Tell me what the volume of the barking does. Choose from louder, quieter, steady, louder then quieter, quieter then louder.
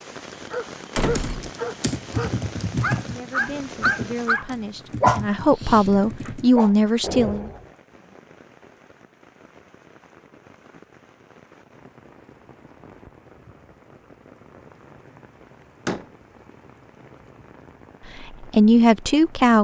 louder then quieter.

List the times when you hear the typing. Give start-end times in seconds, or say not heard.
1.1-6.5.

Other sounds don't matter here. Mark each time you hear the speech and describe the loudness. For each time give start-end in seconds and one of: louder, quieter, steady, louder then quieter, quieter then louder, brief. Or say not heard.
3.1-7.5 louder
18.1-19.5 brief.